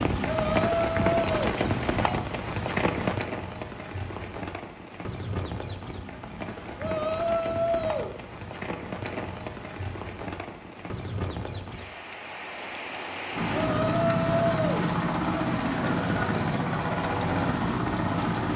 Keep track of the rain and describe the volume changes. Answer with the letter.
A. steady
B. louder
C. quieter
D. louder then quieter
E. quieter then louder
C.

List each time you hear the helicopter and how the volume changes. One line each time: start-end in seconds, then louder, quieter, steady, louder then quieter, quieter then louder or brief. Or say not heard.
13.3-18.5 steady.